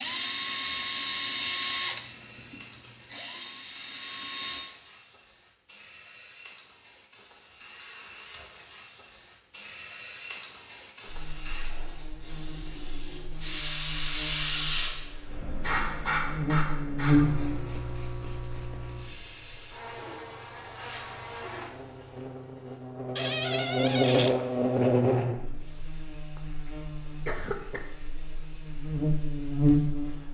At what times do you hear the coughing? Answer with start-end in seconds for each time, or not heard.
26.4-27.9.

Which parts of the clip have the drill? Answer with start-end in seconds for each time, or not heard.
0.0-4.8.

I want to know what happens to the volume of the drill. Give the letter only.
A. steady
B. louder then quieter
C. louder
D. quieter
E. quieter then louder
E.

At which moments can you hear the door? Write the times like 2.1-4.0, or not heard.
23.1-24.4.